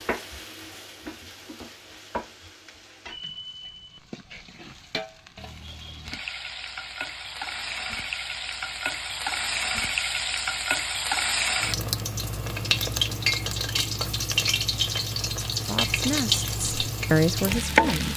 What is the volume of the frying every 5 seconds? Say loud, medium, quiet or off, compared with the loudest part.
quiet, medium, loud, loud.